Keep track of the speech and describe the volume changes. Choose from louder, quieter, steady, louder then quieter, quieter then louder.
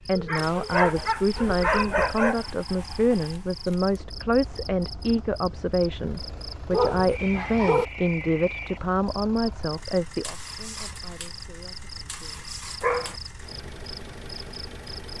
quieter.